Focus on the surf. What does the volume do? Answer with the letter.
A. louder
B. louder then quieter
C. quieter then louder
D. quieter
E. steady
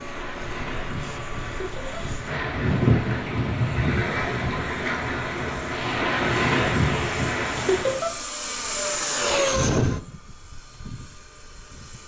A.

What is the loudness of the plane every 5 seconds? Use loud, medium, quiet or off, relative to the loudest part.
quiet, loud, quiet.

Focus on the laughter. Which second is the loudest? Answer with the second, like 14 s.
8 s.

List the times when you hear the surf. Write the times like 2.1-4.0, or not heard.
0.0-8.1.